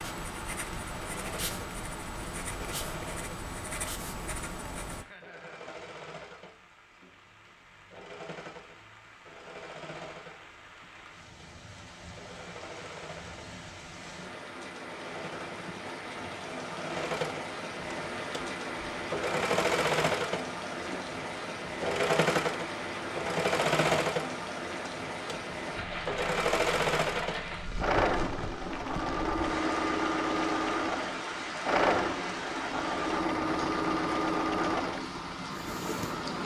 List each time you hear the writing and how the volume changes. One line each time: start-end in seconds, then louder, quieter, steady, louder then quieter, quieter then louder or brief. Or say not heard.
0.0-5.0 steady.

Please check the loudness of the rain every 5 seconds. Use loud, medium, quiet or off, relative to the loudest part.
medium, quiet, medium, loud, loud, loud, loud, loud.